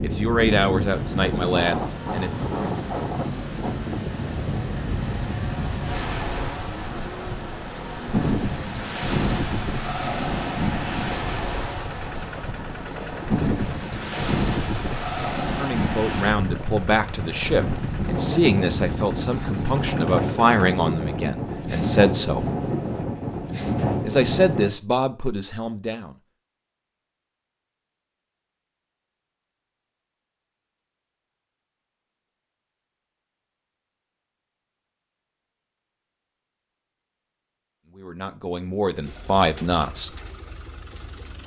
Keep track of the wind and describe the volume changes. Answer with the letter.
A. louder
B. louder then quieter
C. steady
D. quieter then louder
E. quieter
C.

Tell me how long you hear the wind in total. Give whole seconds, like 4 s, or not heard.
25 s.